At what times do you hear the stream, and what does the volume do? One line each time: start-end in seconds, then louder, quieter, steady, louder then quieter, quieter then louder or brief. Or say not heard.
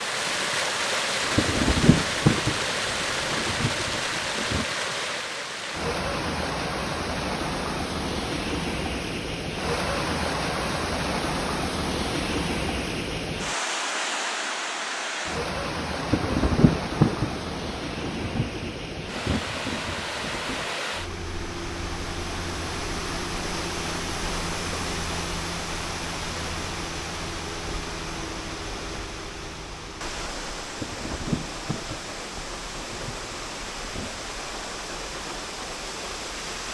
0.0-36.6 quieter.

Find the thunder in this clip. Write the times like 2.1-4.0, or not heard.
1.2-4.7, 15.9-20.7, 30.6-34.2.